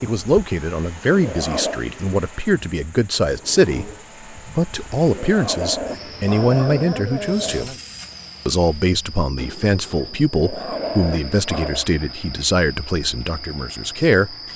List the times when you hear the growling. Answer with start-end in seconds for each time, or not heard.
1.1-1.8, 5.1-7.7, 10.3-11.8.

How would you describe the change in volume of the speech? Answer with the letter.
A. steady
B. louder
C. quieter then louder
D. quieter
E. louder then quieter
A.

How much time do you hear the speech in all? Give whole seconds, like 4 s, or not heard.
14 s.